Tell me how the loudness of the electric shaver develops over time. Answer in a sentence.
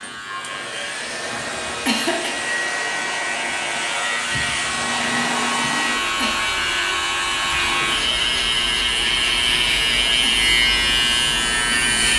The loudness of the electric shaver goes up.